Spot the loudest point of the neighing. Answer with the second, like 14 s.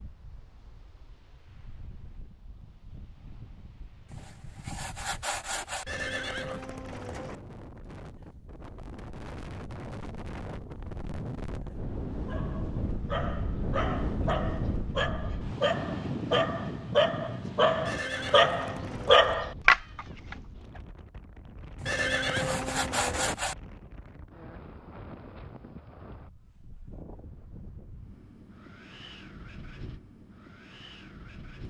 22 s.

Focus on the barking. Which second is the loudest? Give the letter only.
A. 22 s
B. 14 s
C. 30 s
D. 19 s
D.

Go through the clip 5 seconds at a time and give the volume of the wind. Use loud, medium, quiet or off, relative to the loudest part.
quiet, medium, loud, loud, quiet, quiet, quiet.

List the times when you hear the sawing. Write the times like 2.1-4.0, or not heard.
4.0-5.8, 21.8-23.6.